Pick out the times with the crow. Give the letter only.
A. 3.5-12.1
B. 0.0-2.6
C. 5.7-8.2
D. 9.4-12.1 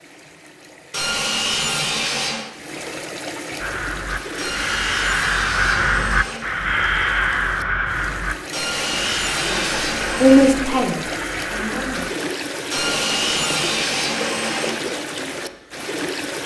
A.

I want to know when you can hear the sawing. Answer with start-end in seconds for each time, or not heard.
0.9-2.5, 4.3-6.4, 8.5-10.6, 12.7-14.7.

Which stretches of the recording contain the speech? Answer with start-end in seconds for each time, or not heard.
9.4-12.1.